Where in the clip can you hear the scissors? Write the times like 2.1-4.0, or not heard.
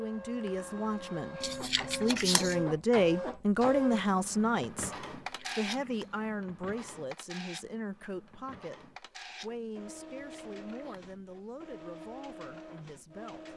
1.4-2.6, 5.1-6.3, 10.0-11.2.